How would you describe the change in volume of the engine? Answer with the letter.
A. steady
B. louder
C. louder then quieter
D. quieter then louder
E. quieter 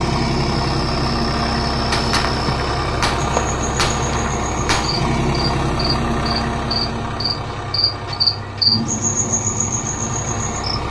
E.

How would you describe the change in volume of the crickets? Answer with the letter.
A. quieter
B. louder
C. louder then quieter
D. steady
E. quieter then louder
B.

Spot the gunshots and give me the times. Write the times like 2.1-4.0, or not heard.
1.9-4.9.